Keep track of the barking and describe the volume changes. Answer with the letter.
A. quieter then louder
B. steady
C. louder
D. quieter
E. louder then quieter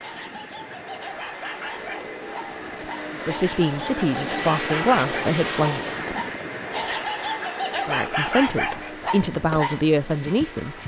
C.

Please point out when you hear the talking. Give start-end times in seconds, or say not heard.
3.1-6.0, 7.8-10.8.